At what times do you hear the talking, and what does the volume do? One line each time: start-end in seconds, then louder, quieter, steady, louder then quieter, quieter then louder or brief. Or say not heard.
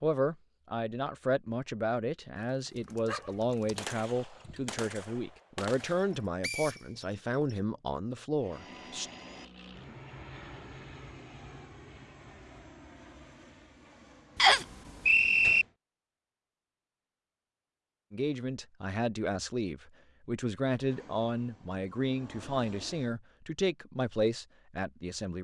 0.0-9.1 steady
18.1-25.3 steady.